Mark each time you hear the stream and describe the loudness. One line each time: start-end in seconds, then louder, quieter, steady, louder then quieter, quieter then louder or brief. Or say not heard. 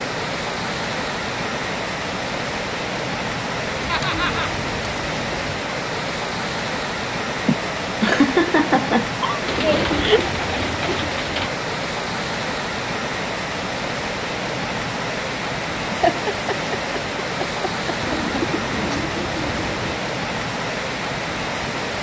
0.0-21.9 steady.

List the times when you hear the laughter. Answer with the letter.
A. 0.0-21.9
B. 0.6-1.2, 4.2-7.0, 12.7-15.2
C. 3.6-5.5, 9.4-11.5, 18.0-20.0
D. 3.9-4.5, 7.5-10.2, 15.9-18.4
D.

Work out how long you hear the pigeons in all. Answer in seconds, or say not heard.
6 s.